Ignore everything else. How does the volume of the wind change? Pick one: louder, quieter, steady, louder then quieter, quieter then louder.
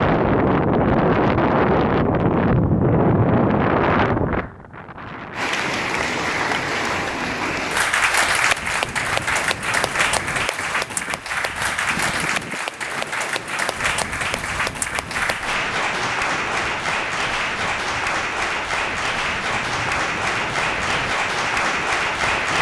quieter.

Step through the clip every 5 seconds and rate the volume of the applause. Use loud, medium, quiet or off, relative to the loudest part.
off, loud, loud, loud, loud.